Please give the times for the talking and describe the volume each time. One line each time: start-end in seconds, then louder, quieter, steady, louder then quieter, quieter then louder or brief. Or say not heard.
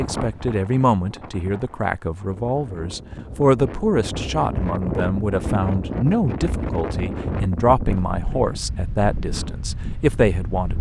0.0-10.7 steady.